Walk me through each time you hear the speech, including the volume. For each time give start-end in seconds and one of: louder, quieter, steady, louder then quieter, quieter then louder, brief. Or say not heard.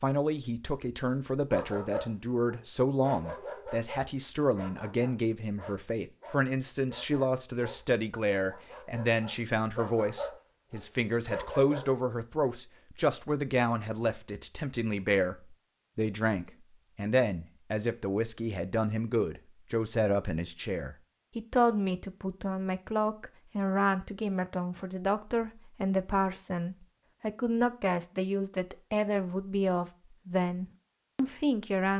0.0-31.9 steady.